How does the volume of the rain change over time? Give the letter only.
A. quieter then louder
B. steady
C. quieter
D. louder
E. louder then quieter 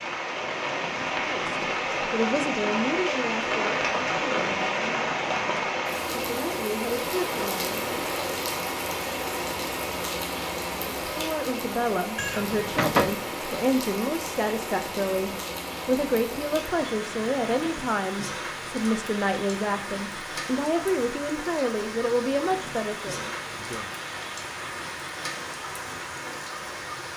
C.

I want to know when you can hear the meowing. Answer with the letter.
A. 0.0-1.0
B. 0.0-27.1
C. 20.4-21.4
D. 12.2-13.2
D.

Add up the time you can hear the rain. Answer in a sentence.
You can hear the rain for 27 seconds altogether.